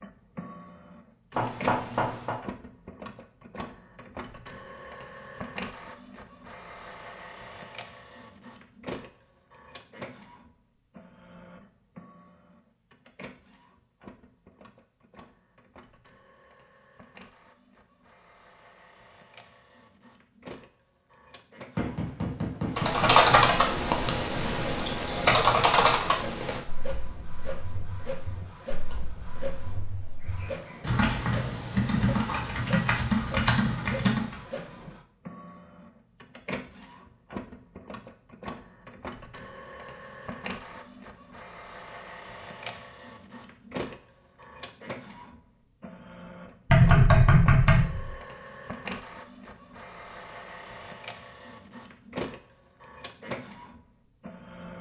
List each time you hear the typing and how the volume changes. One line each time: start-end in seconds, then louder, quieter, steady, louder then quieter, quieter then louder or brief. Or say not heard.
22.8-34.4 quieter then louder.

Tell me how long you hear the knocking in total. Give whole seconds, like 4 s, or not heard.
4 s.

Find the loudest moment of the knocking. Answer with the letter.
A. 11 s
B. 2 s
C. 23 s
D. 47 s
D.